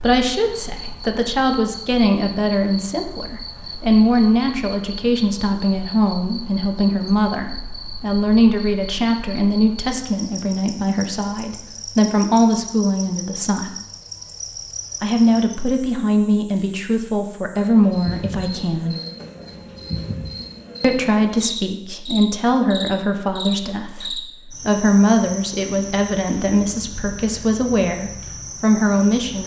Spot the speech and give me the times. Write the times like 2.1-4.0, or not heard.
0.0-13.8, 15.0-18.9, 20.8-29.4.